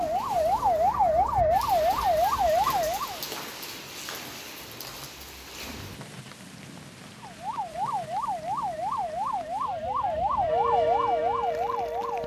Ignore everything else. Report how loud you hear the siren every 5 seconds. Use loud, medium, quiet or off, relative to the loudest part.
loud, medium, loud.